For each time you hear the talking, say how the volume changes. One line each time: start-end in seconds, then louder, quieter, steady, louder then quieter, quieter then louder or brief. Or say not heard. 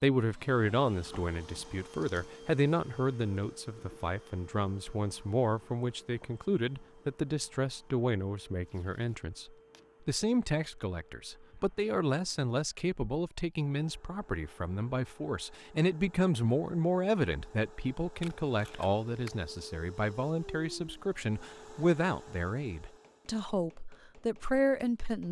0.0-25.2 steady.